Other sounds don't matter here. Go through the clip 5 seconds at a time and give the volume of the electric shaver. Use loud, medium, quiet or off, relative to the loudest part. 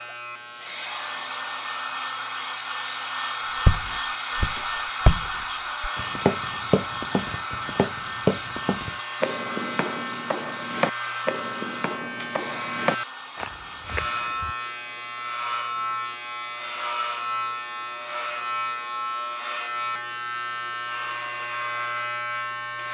medium, medium, loud, loud, loud.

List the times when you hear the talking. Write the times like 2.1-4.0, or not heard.
not heard.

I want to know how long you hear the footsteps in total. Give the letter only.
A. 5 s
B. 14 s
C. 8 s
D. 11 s
D.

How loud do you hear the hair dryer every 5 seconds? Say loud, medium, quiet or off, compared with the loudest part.
loud, loud, medium, off, off.